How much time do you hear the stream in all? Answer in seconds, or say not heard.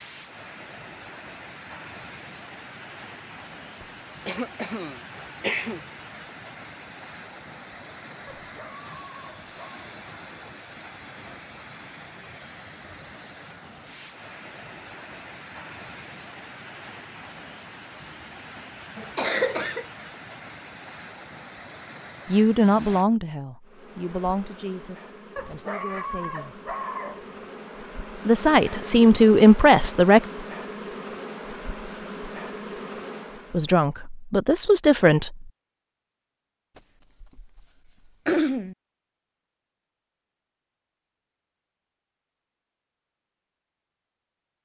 23 s.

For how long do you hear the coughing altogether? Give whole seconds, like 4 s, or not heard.
4 s.